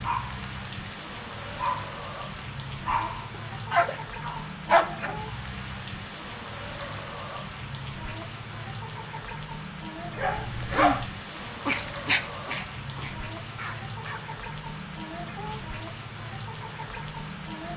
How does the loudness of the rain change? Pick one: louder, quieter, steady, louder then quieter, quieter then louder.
steady.